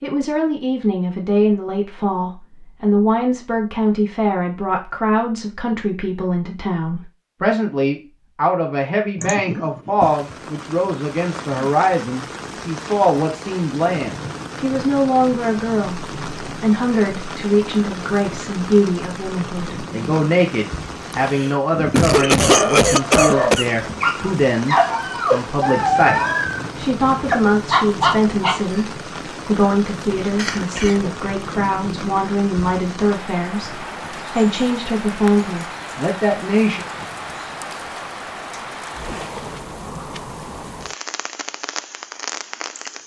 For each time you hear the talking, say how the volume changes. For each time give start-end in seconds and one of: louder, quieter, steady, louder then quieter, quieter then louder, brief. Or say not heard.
0.0-36.9 steady.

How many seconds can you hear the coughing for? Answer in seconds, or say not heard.
4 s.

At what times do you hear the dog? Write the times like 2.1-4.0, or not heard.
22.4-28.8.